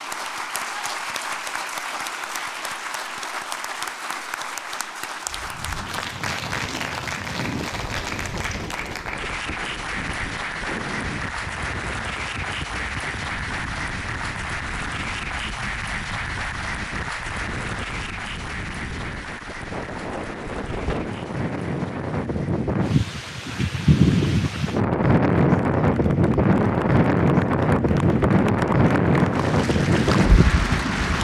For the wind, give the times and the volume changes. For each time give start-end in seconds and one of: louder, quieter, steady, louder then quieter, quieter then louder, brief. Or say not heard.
5.2-31.1 louder.